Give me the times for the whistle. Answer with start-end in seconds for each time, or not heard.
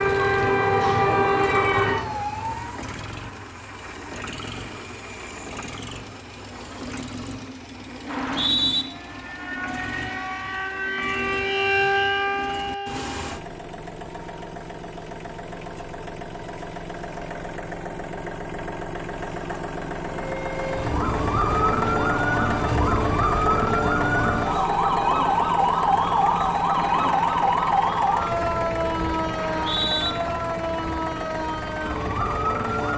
8.1-8.8, 29.4-30.1.